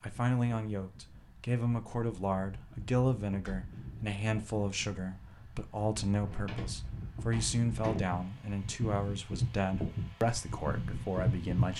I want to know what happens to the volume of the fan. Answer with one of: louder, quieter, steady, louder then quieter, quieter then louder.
louder.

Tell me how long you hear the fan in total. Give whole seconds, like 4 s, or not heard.
12 s.